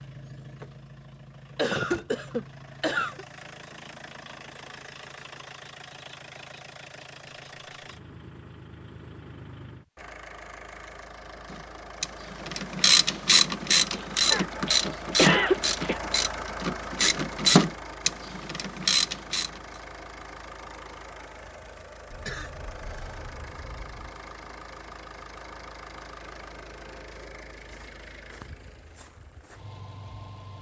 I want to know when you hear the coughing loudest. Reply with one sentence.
The volume of the coughing peaks at 15 seconds.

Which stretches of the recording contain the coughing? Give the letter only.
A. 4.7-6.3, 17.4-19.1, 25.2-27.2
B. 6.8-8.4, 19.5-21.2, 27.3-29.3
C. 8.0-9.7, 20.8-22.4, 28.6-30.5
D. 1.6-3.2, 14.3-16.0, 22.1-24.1
D.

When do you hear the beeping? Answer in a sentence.
The beeping can't be heard in this clip.